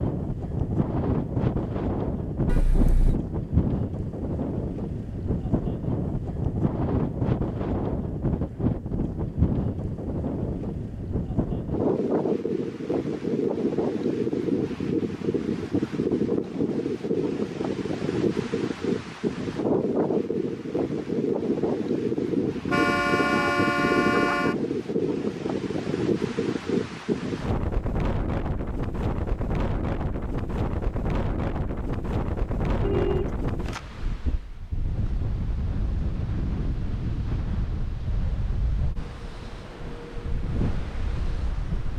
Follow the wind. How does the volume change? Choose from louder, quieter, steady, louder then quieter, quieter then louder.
quieter.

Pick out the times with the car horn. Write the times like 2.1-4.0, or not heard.
2.5-3.2, 22.6-24.6, 32.8-34.2.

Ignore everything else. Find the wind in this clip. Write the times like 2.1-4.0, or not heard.
0.0-41.9.